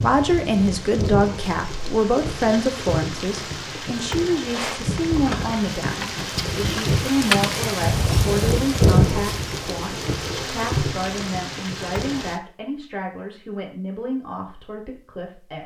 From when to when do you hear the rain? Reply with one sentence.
The rain can be heard from 0.0 to 12.4 s.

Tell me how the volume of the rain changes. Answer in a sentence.
The loudness of the rain goes up, then down.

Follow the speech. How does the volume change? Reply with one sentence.
The volume of the speech goes down.